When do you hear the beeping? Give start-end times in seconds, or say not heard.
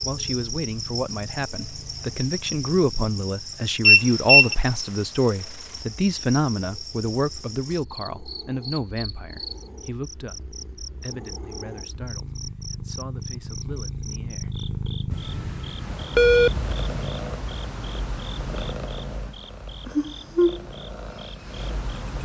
3.9-4.5, 15.1-16.9.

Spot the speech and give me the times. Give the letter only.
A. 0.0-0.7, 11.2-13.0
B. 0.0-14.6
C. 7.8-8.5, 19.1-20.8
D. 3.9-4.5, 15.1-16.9
B.